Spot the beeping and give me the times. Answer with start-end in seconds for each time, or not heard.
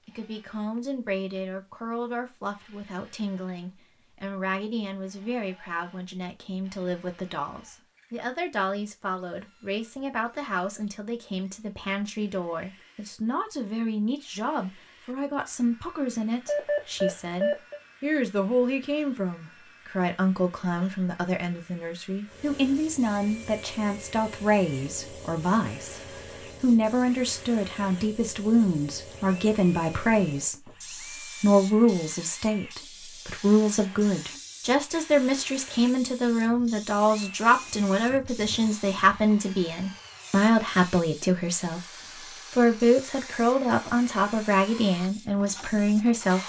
16.4-17.8.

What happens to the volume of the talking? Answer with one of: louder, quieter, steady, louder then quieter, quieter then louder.
louder.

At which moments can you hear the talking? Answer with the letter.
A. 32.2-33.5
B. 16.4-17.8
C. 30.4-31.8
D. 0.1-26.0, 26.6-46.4
D.